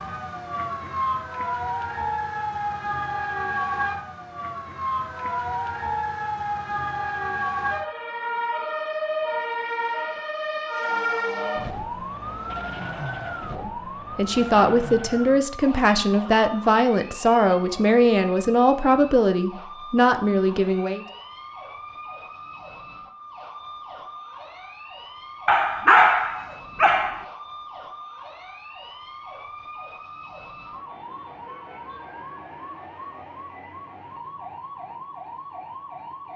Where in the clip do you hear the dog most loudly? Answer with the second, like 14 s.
26 s.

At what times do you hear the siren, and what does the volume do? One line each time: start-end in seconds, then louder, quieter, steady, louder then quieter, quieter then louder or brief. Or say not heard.
0.0-36.3 quieter.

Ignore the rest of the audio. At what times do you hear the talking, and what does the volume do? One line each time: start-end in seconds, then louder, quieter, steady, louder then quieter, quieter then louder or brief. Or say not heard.
13.6-21.1 steady.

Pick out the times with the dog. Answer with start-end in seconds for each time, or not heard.
25.4-27.2.